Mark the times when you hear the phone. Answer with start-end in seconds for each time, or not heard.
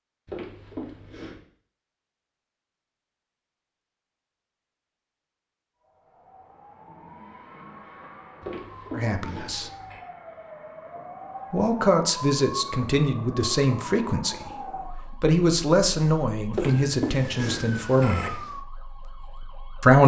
0.2-1.4, 8.4-10.1, 16.5-18.3.